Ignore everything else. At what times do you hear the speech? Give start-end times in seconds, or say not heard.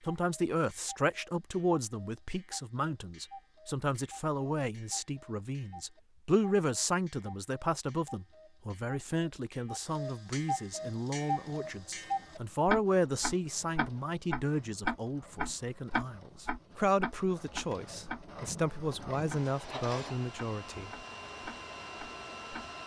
0.0-21.0.